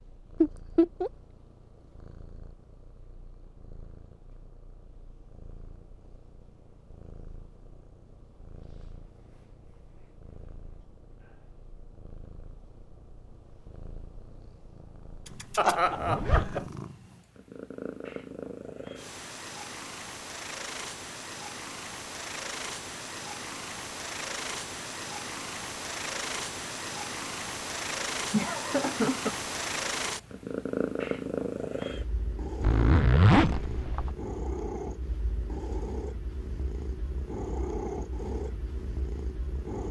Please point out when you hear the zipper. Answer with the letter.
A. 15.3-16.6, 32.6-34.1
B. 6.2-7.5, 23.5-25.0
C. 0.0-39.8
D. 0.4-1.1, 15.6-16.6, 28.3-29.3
A.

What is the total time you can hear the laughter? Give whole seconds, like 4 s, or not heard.
3 s.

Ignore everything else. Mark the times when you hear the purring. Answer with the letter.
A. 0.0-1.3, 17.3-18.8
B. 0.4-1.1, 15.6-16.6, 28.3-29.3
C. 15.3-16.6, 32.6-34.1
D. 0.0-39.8
D.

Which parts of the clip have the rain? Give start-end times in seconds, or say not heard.
not heard.